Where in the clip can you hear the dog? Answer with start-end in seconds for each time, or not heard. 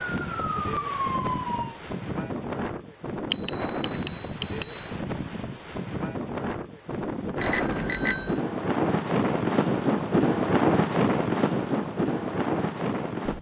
not heard.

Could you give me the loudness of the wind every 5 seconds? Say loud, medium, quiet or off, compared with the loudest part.
medium, loud, loud.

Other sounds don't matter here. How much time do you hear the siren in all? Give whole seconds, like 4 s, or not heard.
2 s.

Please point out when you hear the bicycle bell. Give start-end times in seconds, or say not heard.
3.3-4.8, 7.4-8.4.